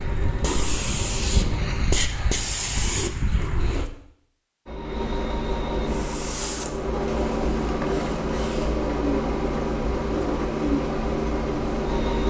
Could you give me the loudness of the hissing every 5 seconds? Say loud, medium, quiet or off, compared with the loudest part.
loud, medium, off.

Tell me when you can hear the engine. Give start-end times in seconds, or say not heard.
0.0-1.9, 4.7-12.2.